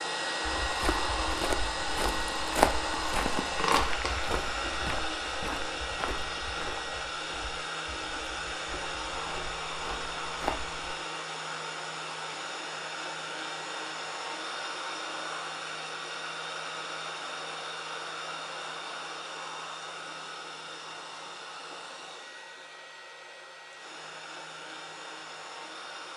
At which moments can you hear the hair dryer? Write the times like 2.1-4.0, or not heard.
0.0-26.1.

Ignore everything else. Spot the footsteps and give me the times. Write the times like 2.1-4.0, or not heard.
0.6-10.9.